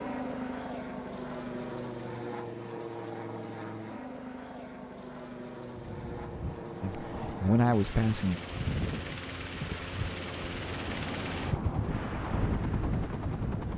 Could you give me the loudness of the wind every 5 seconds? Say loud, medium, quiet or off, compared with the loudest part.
off, loud, loud.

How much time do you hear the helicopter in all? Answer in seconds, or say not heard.
14 s.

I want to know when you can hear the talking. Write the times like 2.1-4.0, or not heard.
6.8-8.4.